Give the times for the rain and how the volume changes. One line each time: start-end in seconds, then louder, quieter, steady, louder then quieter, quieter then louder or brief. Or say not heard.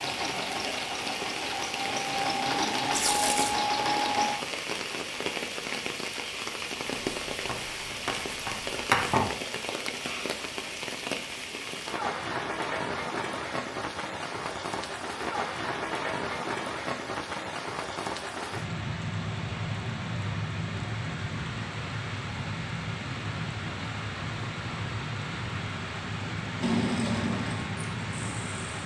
0.0-28.8 steady.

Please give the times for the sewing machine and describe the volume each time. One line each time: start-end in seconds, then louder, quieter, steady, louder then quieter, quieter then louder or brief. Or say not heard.
0.0-4.3 louder
26.6-28.8 brief.